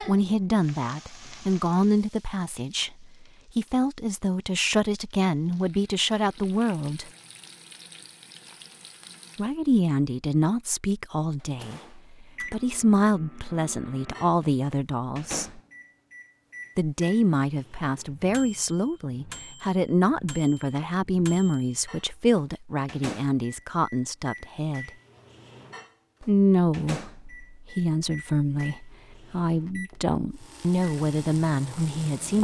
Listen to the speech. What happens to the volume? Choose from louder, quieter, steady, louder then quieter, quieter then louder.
steady.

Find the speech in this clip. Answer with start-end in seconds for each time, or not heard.
0.0-7.1, 9.3-15.6, 16.8-24.9, 26.2-32.3.